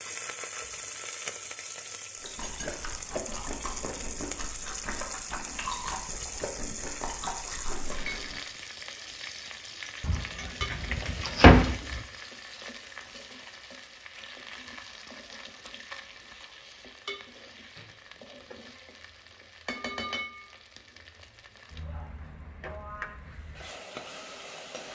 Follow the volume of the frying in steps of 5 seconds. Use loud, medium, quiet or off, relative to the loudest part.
loud, loud, loud, medium, loud.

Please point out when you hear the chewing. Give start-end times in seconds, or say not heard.
2.2-8.4.